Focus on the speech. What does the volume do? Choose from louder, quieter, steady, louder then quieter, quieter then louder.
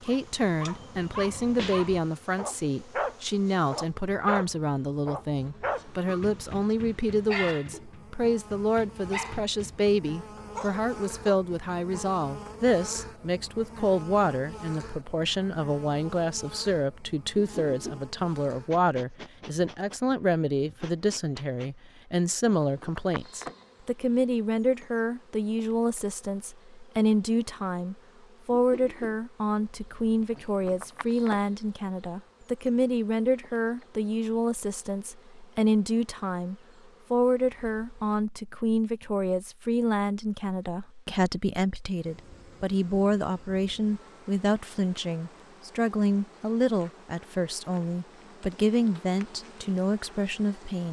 steady.